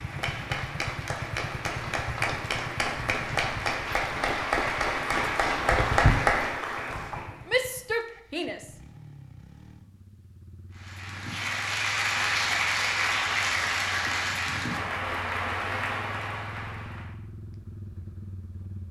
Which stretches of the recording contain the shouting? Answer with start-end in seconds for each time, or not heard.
7.5-8.7.